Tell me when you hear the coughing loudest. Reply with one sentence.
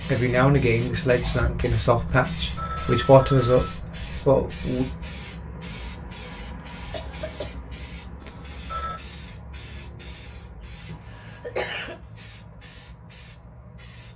The volume of the coughing peaks at 12 seconds.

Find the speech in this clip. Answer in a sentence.
You can hear the speech from 0.1 to 4.8 s.